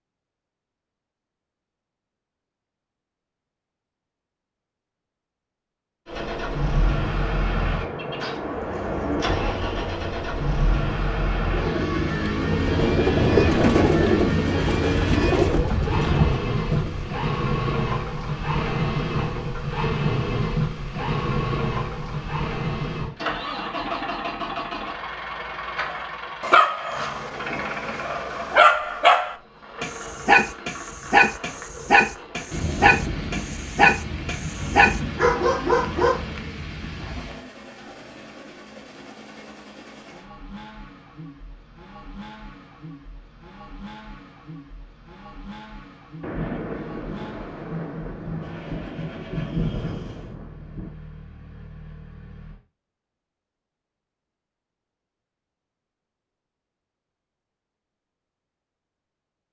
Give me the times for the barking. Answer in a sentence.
The barking can be heard from 25.9 to 36.2 s.